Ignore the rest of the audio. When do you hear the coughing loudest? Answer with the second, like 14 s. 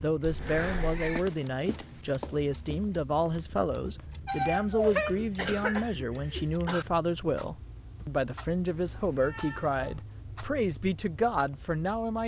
5 s.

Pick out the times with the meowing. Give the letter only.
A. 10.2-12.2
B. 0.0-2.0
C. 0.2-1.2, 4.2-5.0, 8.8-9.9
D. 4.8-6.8
C.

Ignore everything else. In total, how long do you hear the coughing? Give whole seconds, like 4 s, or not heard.
2 s.